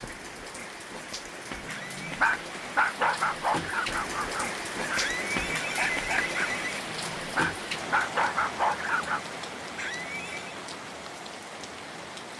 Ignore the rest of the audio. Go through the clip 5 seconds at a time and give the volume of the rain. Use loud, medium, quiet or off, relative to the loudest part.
loud, loud, medium.